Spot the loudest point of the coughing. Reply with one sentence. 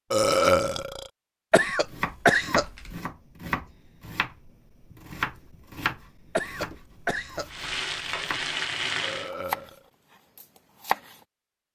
The loudest moment of the coughing is at 2 seconds.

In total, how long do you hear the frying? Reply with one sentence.
You can hear the frying for 2 seconds altogether.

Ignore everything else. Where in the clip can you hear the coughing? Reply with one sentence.
The coughing can be heard from 1.5 to 3.0 s and from 6.3 to 7.5 s.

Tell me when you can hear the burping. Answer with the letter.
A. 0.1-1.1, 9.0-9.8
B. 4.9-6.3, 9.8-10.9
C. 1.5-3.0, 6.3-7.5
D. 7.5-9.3
A.